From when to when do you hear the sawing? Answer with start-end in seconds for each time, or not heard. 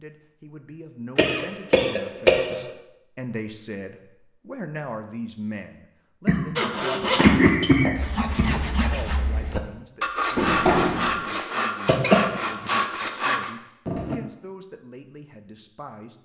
6.5-14.2.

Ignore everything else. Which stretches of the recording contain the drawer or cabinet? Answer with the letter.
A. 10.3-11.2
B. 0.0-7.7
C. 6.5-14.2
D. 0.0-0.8
A.